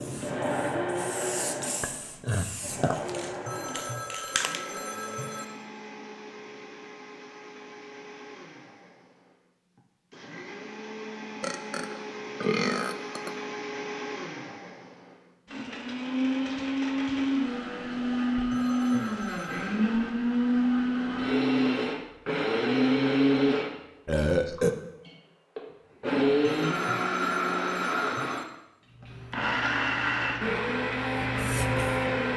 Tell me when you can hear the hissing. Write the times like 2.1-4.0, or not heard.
0.0-4.7, 28.9-32.3.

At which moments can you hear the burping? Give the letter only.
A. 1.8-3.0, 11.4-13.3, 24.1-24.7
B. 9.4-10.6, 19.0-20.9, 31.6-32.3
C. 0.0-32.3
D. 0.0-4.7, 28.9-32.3
A.